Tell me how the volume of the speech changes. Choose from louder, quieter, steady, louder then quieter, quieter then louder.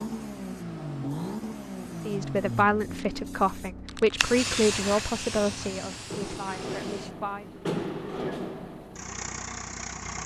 quieter.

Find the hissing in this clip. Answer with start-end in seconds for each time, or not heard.
0.0-7.3.